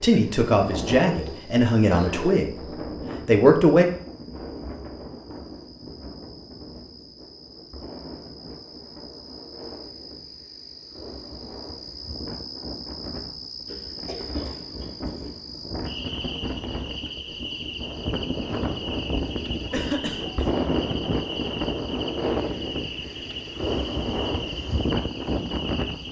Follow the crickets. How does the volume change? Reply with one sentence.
The loudness of the crickets goes up.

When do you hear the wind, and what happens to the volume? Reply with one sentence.
The wind can be heard from 0.1 to 26.0 s, getting quieter then louder.